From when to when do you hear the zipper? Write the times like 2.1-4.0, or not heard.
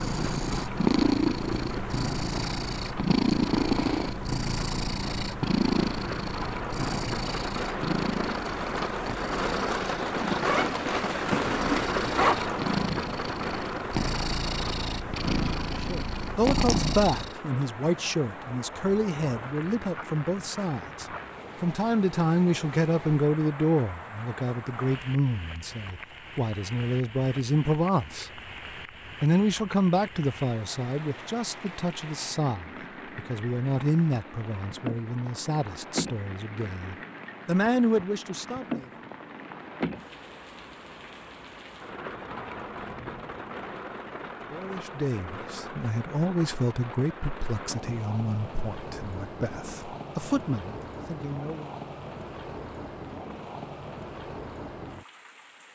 10.4-12.4.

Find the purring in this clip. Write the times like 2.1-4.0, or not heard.
0.0-17.4.